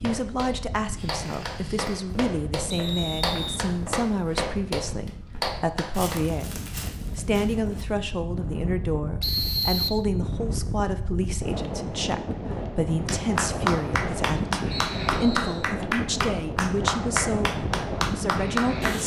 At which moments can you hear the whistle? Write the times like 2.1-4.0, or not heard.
2.7-3.6, 9.2-10.0, 14.7-15.7.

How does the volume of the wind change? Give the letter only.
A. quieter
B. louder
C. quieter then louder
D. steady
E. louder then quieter
B.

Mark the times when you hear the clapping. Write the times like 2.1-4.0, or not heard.
0.0-6.2, 13.1-19.0.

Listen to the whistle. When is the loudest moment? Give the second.
10 s.